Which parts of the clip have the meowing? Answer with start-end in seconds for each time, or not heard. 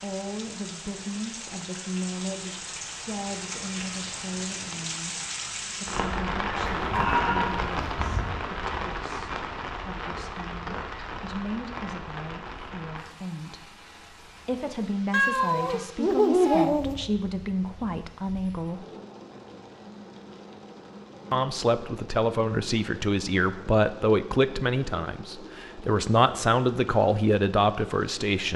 15.1-16.9.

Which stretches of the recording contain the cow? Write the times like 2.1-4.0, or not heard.
6.7-8.3.